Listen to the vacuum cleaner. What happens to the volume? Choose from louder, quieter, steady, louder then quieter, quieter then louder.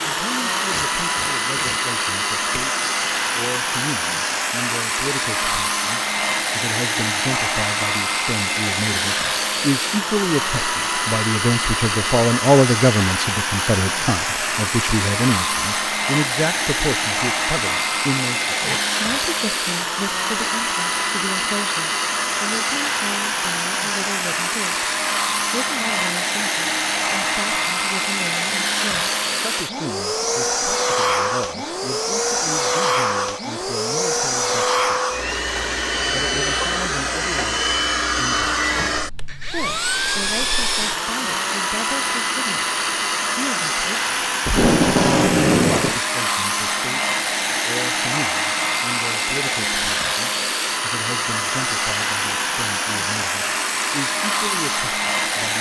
steady.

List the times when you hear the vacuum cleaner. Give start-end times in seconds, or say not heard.
0.0-55.5.